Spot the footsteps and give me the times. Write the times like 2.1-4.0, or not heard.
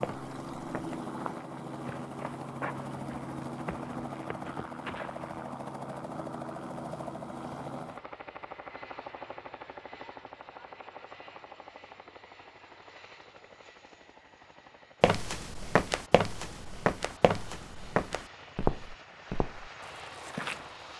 0.0-5.3, 15.0-20.9.